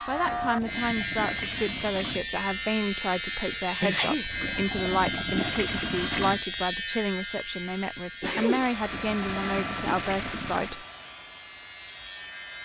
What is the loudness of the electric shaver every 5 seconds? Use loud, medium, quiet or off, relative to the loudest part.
loud, loud, quiet.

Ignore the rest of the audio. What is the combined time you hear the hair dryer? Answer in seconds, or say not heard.
4 s.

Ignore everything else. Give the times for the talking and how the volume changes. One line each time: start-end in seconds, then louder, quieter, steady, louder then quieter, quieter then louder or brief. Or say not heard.
0.1-10.8 steady.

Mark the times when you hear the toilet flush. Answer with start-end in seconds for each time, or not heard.
0.1-2.2, 4.2-6.5, 8.8-10.8.